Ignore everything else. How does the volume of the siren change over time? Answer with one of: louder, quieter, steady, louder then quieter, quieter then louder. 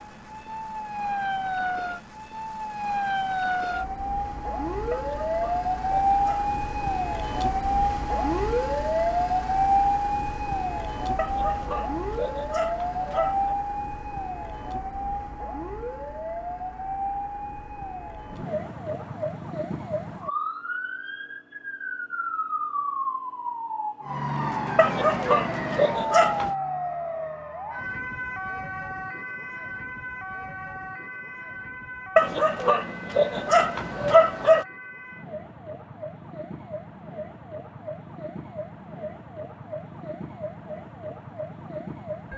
quieter.